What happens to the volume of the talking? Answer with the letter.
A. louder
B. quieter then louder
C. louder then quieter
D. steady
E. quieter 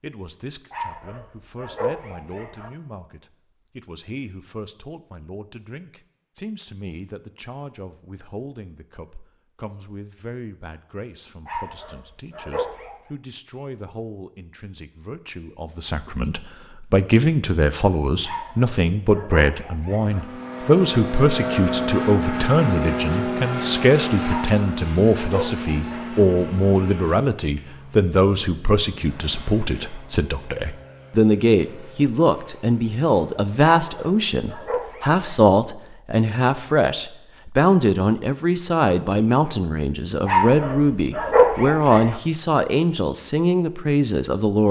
A.